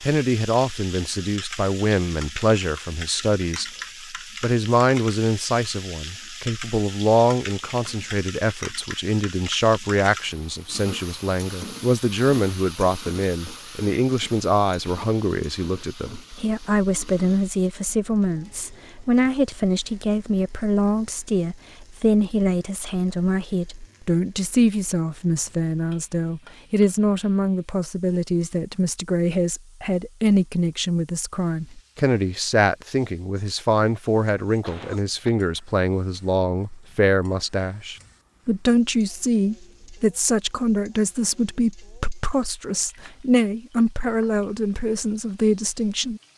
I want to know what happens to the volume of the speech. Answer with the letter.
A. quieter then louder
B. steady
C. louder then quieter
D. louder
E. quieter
B.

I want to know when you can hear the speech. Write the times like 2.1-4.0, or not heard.
0.0-3.6, 4.4-46.2.